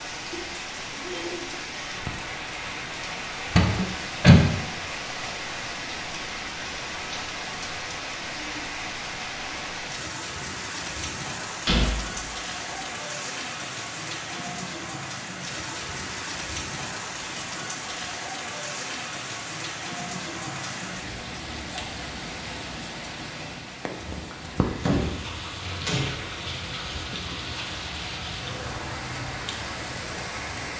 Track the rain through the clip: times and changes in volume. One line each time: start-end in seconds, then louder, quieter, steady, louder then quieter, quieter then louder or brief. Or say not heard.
0.0-30.7 steady.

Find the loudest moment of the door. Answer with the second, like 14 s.
4 s.